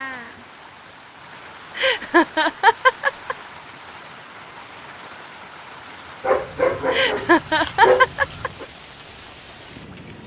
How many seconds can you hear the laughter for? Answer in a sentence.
The laughter can be heard for 3 seconds in total.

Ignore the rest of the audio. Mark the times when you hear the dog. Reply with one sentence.
The dog can be heard from 6.2 to 8.7 s.